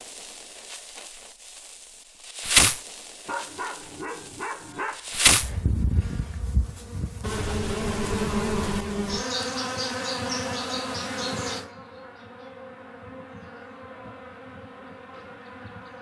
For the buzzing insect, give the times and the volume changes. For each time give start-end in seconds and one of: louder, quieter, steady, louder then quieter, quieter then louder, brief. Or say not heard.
0.0-15.9 quieter.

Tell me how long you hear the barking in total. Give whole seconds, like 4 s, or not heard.
2 s.